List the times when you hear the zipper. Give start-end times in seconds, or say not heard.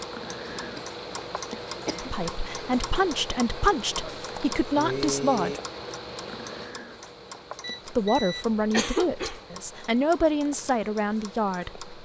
not heard.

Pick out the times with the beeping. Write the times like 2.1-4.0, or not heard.
7.6-8.4.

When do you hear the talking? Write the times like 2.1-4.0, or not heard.
1.9-5.6, 7.8-11.9.